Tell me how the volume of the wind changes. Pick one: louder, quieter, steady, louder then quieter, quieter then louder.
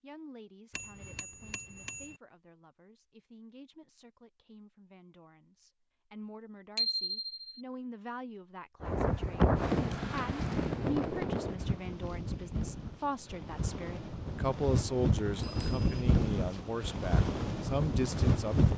quieter then louder.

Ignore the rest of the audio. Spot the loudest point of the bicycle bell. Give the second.
7 s.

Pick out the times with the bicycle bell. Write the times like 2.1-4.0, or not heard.
0.8-2.1, 6.8-7.6, 15.4-15.8.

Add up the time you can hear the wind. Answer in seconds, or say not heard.
10 s.